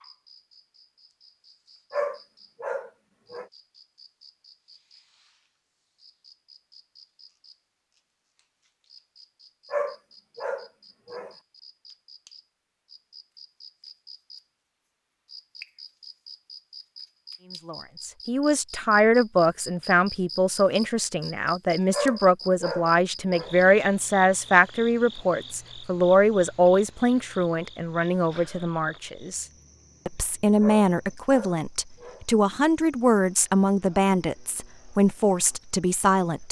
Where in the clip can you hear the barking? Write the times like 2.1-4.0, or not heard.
1.9-3.5, 9.7-11.3, 21.9-23.6, 30.6-32.2.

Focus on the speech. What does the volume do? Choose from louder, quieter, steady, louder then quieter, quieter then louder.
steady.